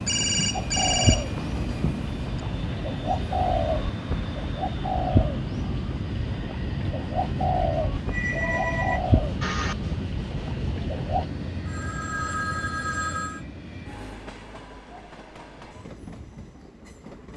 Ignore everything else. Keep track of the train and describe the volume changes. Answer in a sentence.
The loudness of the train goes down.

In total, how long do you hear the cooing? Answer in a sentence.
You can hear the cooing for 11 seconds altogether.